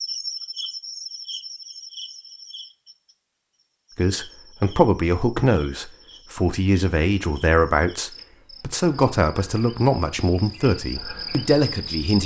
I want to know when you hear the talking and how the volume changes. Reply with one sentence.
The talking can be heard from 4.0 to 12.2 s, at a steady volume.